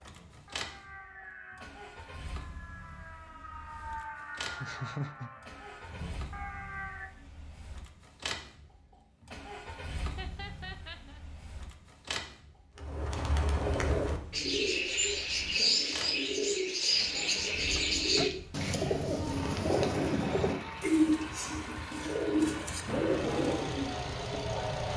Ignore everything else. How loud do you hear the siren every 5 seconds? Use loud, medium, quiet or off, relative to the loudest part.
medium, medium, off, off, loud.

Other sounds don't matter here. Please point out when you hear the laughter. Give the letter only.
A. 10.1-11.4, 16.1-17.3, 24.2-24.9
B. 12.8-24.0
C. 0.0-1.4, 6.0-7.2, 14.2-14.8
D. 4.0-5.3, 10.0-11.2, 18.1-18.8
D.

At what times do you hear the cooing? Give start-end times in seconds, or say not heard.
12.8-24.0.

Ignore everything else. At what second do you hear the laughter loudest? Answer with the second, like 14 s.
5 s.